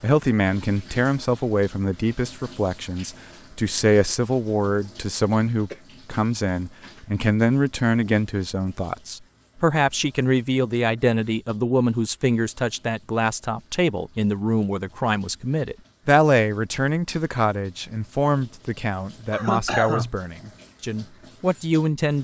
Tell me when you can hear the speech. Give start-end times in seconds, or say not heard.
0.0-22.1.